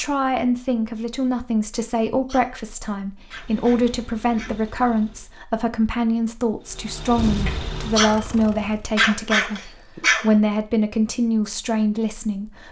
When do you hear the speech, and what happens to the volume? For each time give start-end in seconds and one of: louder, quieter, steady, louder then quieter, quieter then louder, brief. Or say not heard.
0.0-12.6 steady.